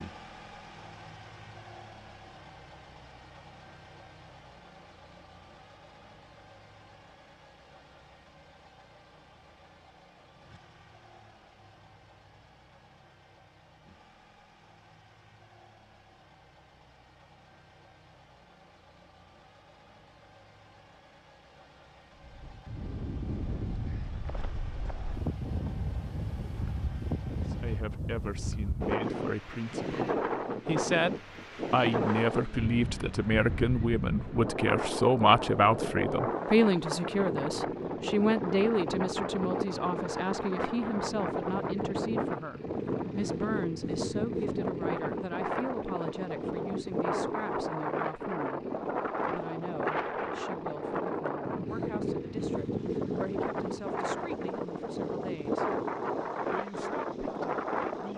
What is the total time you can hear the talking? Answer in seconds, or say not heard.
29 s.